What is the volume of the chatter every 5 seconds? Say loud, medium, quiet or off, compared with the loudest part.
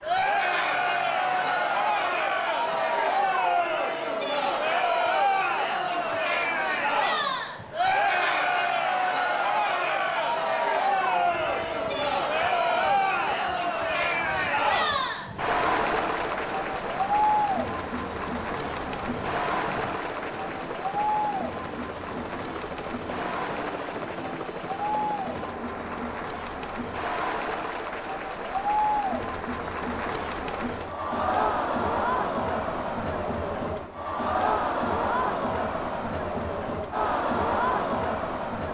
loud, loud, loud, loud, medium, medium, loud, loud.